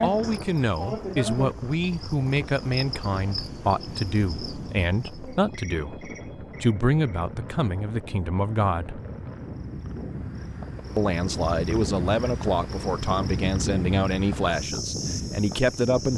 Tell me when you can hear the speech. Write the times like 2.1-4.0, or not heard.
0.0-9.0, 10.9-16.1.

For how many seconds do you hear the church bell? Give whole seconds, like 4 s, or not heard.
not heard.